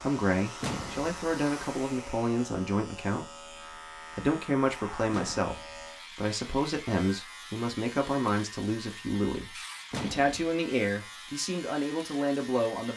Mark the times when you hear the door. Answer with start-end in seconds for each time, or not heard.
0.6-1.1, 5.1-5.9, 9.9-10.5.